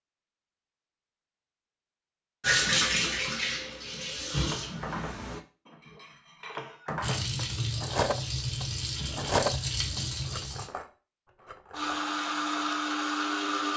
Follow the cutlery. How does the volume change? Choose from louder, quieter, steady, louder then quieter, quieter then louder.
louder then quieter.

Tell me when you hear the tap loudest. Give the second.
3 s.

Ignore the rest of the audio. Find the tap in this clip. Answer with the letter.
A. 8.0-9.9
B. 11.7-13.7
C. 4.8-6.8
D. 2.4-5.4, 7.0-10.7
D.